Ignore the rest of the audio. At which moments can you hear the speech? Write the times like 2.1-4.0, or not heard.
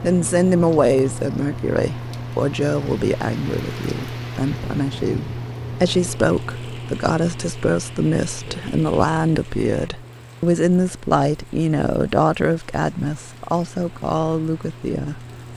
0.0-15.2.